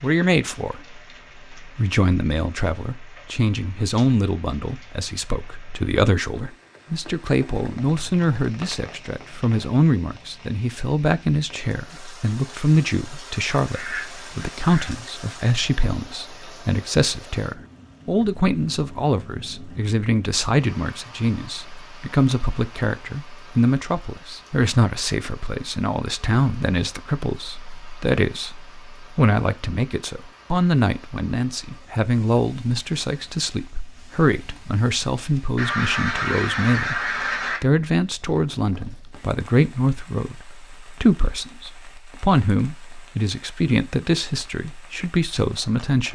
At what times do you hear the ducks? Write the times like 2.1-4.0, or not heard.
13.6-14.9, 35.5-37.6.